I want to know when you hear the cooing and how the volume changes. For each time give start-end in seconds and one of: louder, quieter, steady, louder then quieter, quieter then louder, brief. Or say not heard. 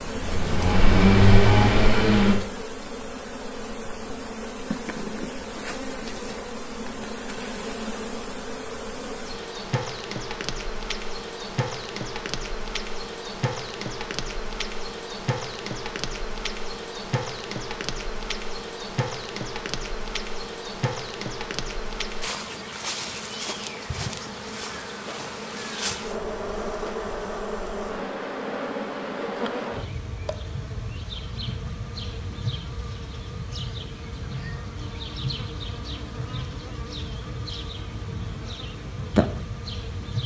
not heard.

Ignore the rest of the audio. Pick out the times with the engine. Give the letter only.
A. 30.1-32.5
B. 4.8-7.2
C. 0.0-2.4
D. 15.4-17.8
C.